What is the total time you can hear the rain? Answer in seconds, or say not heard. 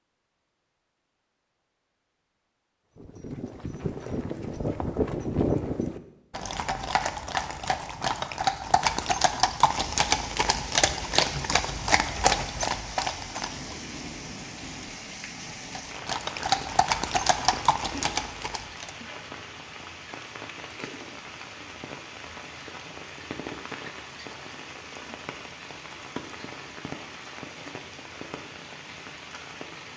20 s.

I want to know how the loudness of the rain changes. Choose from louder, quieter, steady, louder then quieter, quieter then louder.
steady.